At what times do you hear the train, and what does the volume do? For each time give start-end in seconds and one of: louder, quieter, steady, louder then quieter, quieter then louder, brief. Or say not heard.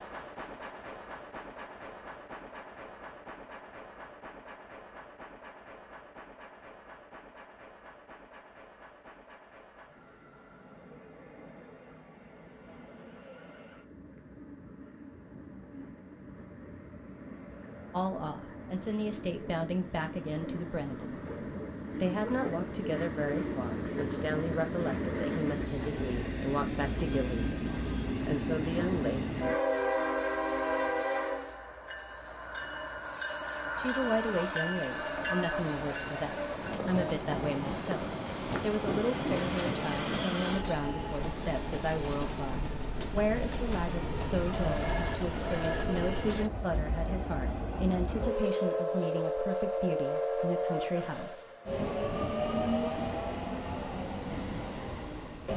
0.0-55.5 louder.